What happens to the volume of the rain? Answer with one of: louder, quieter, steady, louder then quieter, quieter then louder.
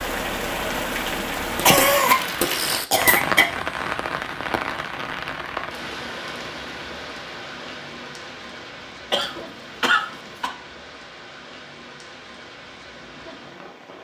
quieter.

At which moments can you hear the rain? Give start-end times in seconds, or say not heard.
0.0-13.9.